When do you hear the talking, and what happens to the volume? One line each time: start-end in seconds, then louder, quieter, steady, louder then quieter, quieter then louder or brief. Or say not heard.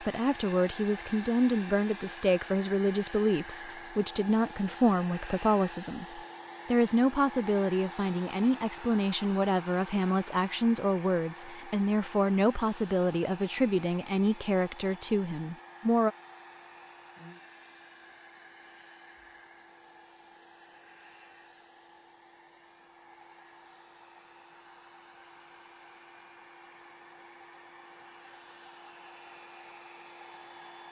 0.0-16.1 steady.